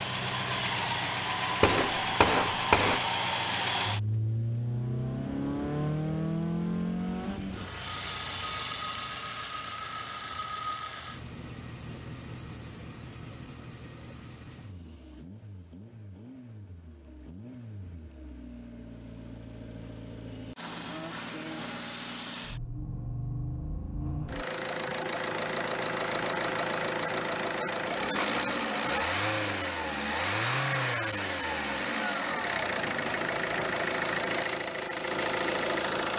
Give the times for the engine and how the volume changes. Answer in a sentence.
The engine can be heard from 0.0 to 36.1 s, getting quieter then louder.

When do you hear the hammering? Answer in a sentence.
The hammering can be heard from 1.6 to 3.0 s.